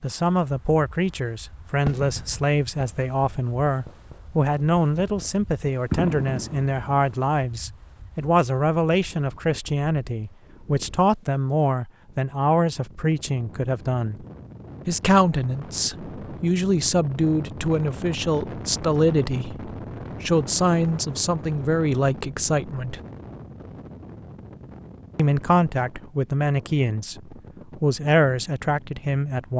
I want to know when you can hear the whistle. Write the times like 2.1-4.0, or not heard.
not heard.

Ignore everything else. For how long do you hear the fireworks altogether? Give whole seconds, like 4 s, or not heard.
5 s.